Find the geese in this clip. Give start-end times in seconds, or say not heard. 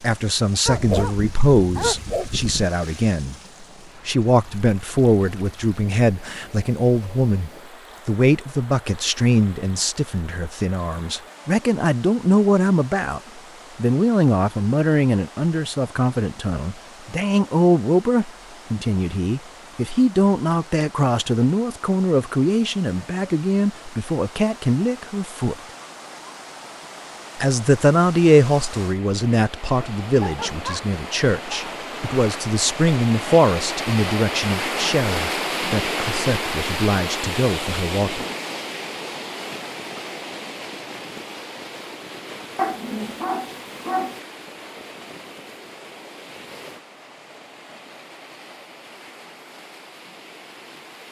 not heard.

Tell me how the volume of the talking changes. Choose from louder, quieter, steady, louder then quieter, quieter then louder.
steady.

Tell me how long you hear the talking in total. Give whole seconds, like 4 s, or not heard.
36 s.